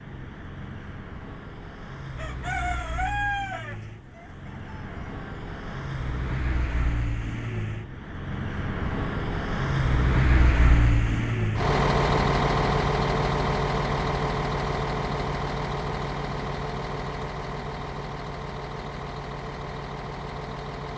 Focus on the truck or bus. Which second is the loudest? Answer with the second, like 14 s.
12 s.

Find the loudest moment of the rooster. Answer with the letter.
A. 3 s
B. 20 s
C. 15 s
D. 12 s
A.